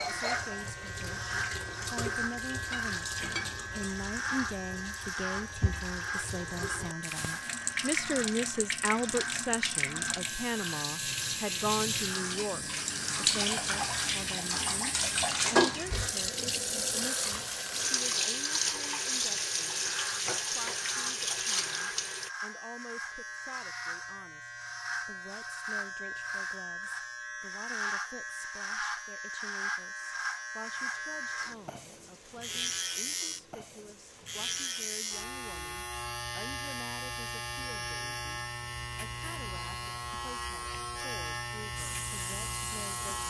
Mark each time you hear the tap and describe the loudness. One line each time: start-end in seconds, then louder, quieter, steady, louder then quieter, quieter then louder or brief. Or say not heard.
0.0-22.3 louder
41.8-43.2 brief.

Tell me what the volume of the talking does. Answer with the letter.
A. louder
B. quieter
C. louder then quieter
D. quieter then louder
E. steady
B.